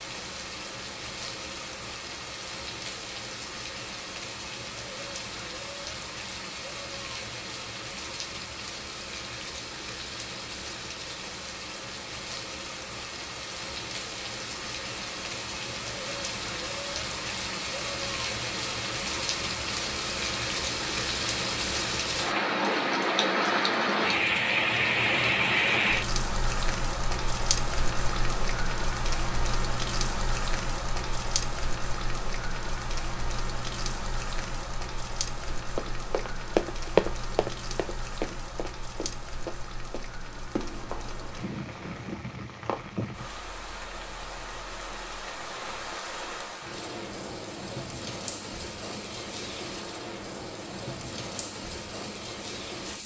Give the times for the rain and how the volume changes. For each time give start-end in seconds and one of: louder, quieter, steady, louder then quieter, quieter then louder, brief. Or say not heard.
0.0-53.0 louder then quieter.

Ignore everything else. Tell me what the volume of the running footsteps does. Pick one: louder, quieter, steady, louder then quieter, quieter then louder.
quieter.